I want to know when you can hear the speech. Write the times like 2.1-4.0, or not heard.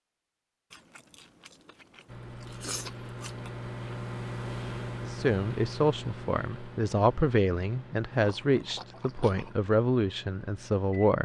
5.0-11.2.